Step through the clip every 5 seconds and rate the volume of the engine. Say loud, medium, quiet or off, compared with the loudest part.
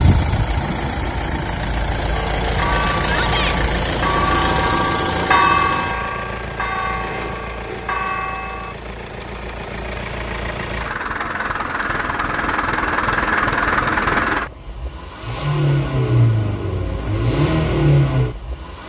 loud, medium, loud, loud.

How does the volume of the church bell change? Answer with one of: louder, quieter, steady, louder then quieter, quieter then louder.
louder then quieter.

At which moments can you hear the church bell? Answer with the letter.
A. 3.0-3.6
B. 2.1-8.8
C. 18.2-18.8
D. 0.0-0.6
B.